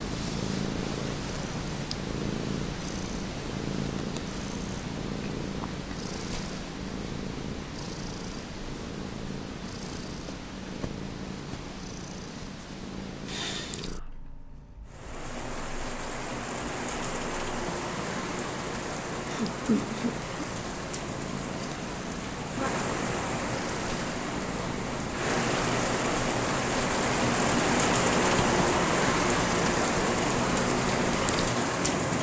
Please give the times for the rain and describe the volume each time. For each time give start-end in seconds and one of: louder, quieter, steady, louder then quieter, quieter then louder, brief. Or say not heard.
14.8-32.1 louder.